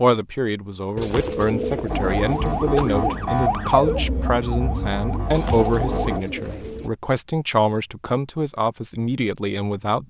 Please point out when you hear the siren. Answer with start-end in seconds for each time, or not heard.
1.9-6.2.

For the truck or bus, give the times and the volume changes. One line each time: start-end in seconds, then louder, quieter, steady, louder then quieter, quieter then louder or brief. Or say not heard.
not heard.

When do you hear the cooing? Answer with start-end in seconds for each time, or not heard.
0.9-3.2, 5.3-6.9.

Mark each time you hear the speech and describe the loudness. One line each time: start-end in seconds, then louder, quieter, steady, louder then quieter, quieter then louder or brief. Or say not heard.
0.0-10.0 steady.